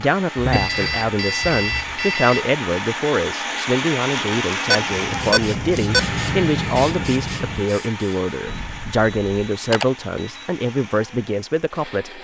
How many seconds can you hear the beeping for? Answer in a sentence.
The beeping can be heard for 6 seconds in total.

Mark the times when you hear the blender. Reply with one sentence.
You can hear the blender from 0.0 to 12.1 s.